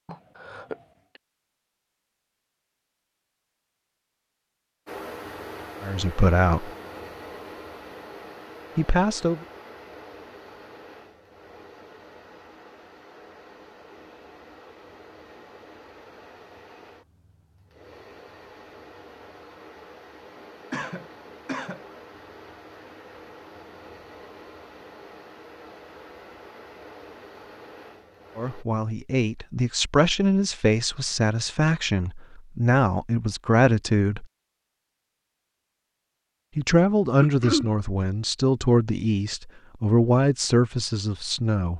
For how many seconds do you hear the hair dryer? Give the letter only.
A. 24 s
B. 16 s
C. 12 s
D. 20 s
A.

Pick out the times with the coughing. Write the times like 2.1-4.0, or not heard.
0.1-1.2, 20.7-21.9, 37.2-37.7.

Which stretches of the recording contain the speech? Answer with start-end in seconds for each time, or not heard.
5.8-6.7, 8.8-9.4, 28.4-34.2, 36.5-41.7.